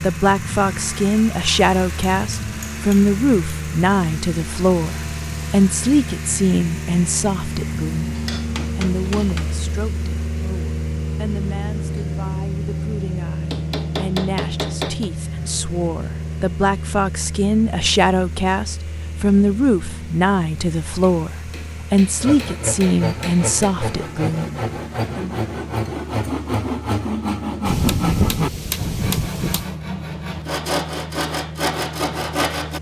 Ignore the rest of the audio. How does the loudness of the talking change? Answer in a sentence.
The volume of the talking goes down, then up.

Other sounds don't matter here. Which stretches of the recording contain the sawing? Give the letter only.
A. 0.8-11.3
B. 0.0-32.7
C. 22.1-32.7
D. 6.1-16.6
C.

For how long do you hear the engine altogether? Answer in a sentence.
You can hear the engine for 33 seconds altogether.